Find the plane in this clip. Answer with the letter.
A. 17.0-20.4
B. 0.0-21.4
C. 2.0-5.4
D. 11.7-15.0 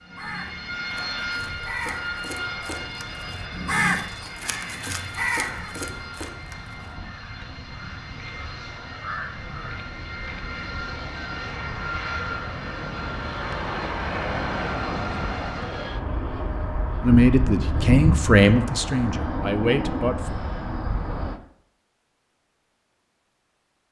B.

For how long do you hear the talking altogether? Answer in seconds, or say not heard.
3 s.